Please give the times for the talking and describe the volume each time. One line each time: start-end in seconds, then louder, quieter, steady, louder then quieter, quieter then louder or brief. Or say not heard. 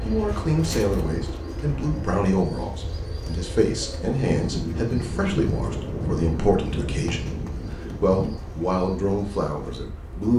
0.1-7.3 steady
8.0-10.3 brief.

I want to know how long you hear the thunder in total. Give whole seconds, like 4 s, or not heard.
4 s.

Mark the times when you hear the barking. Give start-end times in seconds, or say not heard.
not heard.